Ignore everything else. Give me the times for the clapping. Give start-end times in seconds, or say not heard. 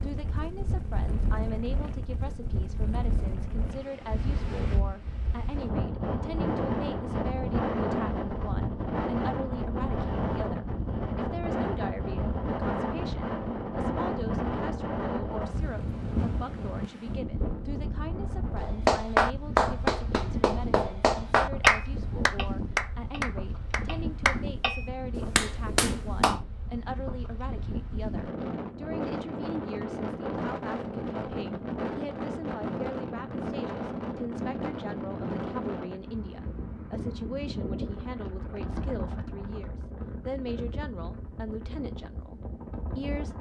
18.6-26.4.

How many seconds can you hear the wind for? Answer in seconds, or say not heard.
43 s.